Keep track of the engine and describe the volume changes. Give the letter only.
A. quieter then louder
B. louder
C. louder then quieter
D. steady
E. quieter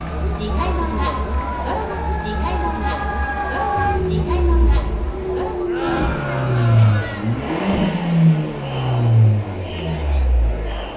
C.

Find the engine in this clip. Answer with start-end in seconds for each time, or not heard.
3.8-10.9.